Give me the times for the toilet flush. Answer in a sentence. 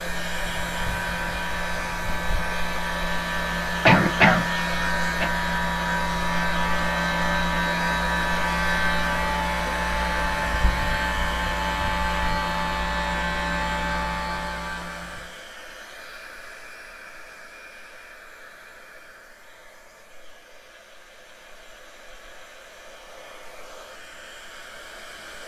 You can't hear the toilet flush here.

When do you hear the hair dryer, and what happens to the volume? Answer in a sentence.
The hair dryer can be heard from 0.0 to 25.4 s, getting quieter.